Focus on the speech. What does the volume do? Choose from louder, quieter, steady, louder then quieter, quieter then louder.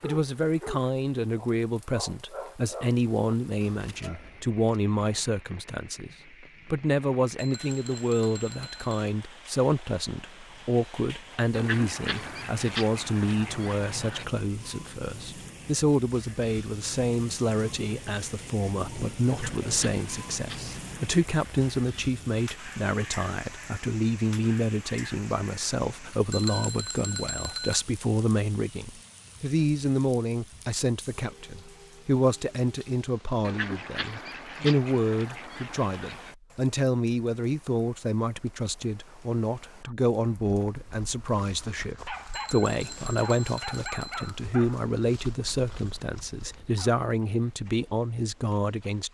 steady.